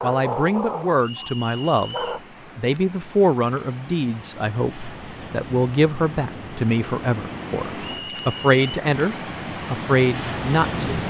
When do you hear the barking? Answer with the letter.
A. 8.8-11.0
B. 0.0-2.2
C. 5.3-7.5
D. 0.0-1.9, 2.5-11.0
B.